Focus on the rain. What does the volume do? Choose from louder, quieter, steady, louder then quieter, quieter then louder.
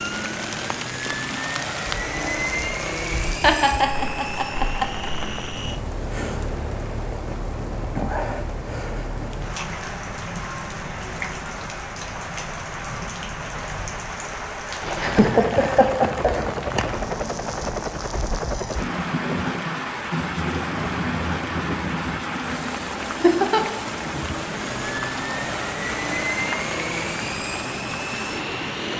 steady.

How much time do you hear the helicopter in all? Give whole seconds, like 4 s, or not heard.
20 s.